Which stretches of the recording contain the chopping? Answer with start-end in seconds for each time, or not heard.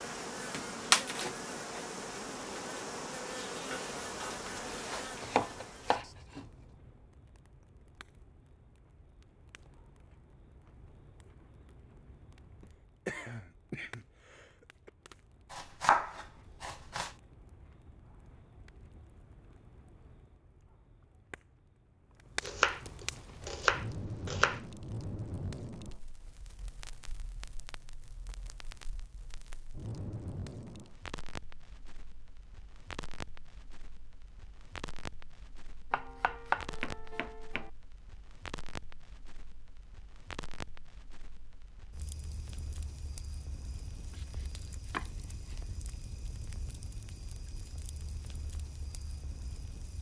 5.2-6.5, 15.5-17.1, 22.4-24.6, 35.9-37.7, 43.9-45.8.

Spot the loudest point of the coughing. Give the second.
13 s.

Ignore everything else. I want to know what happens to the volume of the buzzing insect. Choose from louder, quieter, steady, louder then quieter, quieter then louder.
quieter.